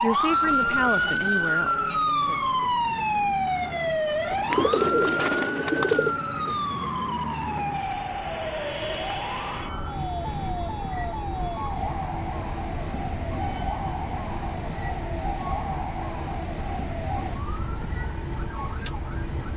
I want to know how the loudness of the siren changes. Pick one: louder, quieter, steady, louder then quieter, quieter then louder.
quieter.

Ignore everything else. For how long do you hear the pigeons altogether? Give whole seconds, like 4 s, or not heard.
2 s.